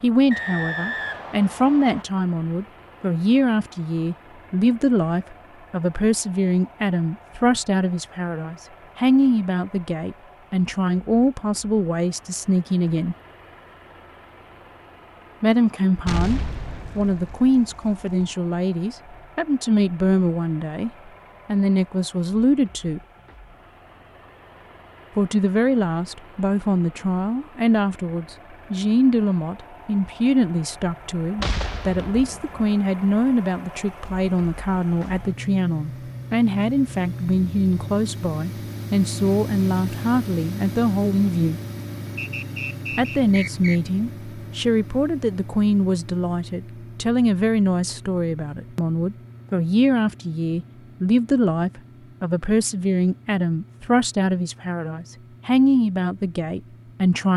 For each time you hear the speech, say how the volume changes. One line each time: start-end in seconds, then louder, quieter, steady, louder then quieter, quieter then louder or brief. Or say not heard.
0.0-13.2 steady
15.4-23.0 steady
25.1-41.6 steady
43.0-57.3 steady.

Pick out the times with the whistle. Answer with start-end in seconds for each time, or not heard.
0.3-2.0, 42.1-43.8.